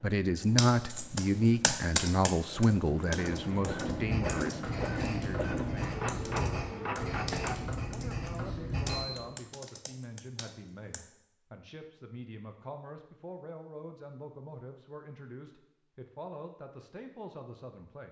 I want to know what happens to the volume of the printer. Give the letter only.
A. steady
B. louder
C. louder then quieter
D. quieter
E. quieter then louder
B.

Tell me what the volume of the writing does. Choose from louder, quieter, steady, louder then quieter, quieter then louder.
steady.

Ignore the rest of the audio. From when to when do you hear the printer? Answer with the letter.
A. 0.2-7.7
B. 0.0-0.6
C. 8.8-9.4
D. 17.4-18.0
A.